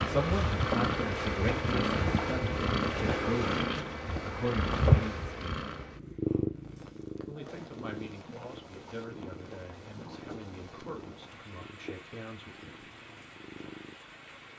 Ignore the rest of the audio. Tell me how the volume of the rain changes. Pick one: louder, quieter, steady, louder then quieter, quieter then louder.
steady.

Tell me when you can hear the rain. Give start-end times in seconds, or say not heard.
6.5-14.5.